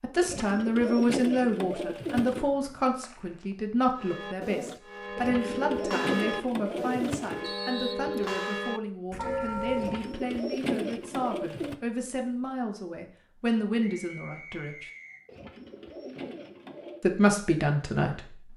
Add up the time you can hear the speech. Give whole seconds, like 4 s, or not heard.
16 s.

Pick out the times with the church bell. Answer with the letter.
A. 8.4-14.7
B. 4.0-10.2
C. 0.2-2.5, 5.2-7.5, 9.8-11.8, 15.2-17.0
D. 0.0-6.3
B.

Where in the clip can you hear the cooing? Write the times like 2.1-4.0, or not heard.
0.2-2.5, 5.2-7.5, 9.8-11.8, 15.2-17.0.